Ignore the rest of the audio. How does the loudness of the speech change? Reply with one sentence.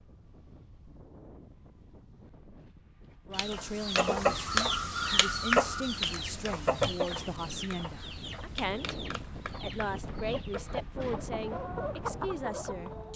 The loudness of the speech stays about the same.